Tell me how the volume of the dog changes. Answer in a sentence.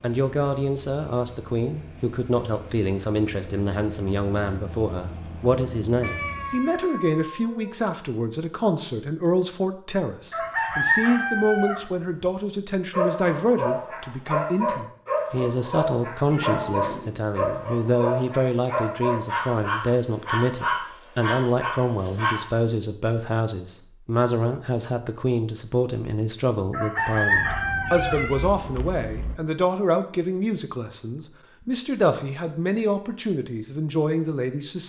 The volume of the dog stays about the same.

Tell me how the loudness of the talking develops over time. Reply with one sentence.
The volume of the talking stays about the same.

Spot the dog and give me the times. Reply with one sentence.
You can hear the dog from 12.9 to 22.4 s.